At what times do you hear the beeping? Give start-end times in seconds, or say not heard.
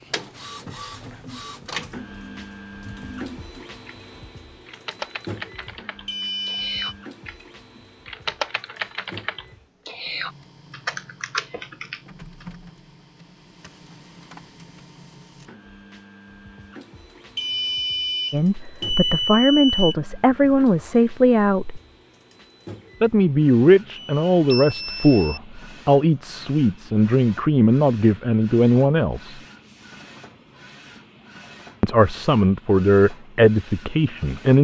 6.0-7.0, 17.4-19.9, 23.9-25.4.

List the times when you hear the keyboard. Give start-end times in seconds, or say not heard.
0.9-12.4.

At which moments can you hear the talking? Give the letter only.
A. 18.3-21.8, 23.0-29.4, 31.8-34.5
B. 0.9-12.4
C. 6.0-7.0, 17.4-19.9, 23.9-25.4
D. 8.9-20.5
A.